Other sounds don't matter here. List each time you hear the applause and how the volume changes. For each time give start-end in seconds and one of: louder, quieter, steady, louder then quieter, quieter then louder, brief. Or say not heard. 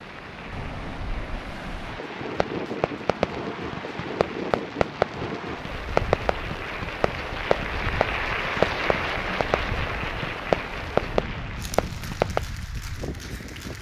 0.0-13.7 louder then quieter.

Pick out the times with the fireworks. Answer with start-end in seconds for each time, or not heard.
2.2-12.4.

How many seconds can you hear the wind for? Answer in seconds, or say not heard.
14 s.